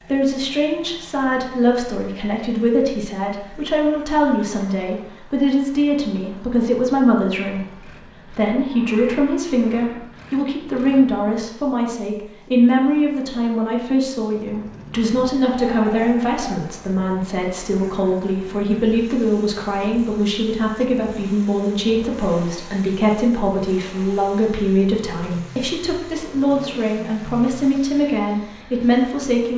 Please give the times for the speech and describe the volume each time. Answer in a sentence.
The speech can be heard from 0.1 to 29.5 s, at a steady volume.